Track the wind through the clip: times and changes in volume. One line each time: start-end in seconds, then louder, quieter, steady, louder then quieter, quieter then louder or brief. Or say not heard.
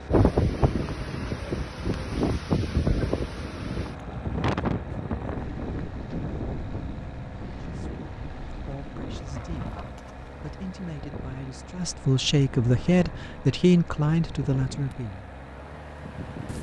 0.0-16.5 quieter.